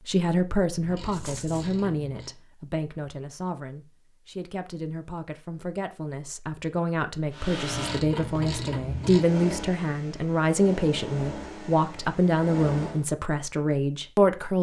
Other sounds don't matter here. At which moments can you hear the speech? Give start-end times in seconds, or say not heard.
0.1-14.5.